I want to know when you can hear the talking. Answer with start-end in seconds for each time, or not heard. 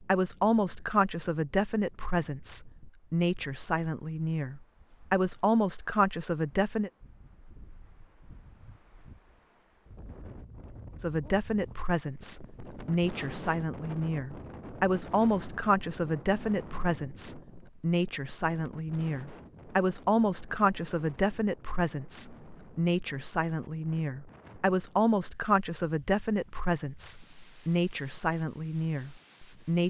0.0-6.9, 11.0-29.8.